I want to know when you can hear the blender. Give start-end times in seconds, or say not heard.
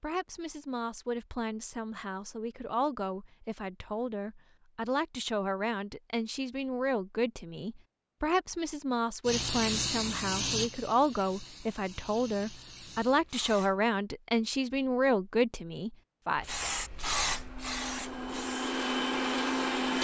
17.2-20.0.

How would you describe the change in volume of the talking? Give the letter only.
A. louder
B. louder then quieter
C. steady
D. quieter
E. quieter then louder
A.